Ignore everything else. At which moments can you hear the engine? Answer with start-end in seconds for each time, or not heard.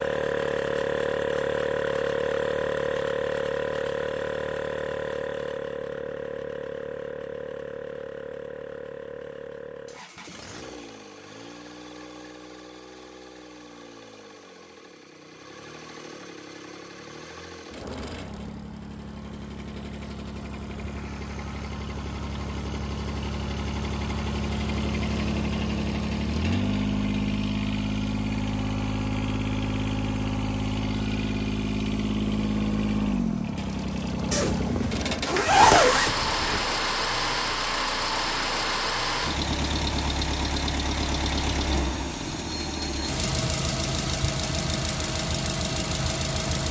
0.0-46.6.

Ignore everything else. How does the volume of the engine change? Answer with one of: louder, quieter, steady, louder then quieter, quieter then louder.
quieter then louder.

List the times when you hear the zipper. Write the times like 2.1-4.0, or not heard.
34.3-36.7.